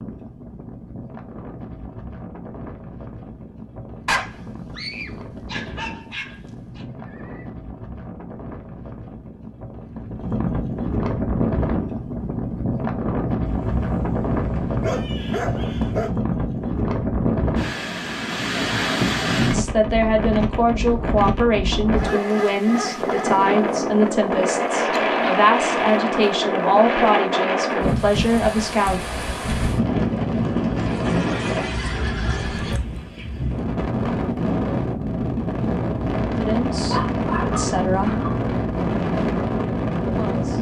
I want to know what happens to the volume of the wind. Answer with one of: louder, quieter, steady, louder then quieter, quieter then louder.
louder.